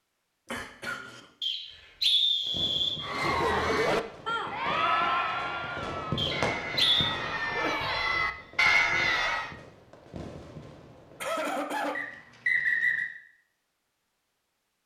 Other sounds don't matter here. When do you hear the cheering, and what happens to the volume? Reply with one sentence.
The cheering can be heard from 3.0 to 9.6 s, getting quieter then louder.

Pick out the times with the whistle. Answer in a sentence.
You can hear the whistle from 1.4 to 3.0 s, from 6.2 to 7.1 s and from 11.9 to 13.1 s.